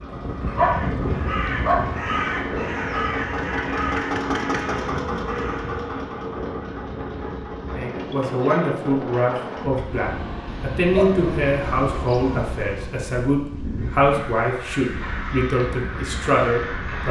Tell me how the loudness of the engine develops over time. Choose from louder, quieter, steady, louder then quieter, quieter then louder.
louder then quieter.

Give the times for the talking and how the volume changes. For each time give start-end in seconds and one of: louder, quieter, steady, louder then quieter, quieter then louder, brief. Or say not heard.
7.7-17.0 steady.